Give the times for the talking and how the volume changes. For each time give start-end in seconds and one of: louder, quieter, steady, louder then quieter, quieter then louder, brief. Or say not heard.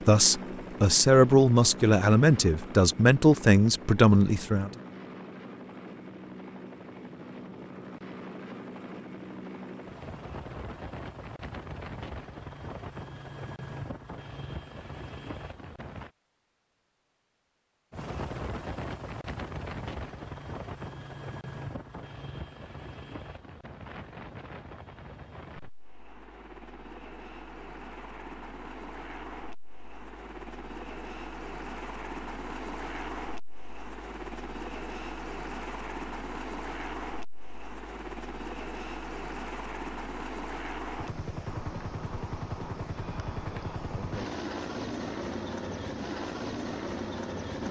0.1-4.7 steady.